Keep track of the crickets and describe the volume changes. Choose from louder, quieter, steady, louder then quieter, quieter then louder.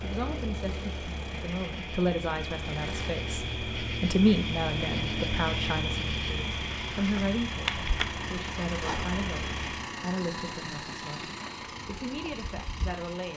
louder then quieter.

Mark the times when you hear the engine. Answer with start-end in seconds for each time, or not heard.
0.0-13.3.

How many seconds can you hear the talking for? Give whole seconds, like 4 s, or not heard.
13 s.